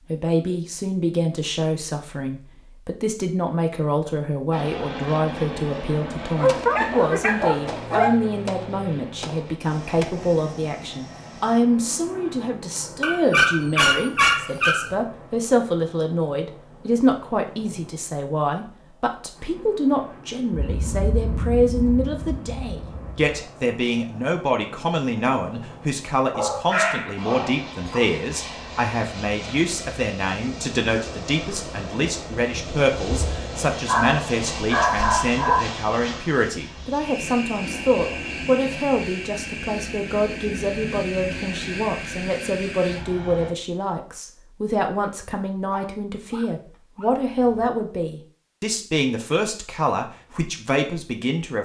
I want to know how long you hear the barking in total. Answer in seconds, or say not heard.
10 s.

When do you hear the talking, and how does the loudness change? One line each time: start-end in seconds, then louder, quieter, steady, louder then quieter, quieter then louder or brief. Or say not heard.
0.1-51.5 steady.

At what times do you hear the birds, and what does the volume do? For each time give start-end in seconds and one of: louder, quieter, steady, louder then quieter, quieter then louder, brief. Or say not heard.
not heard.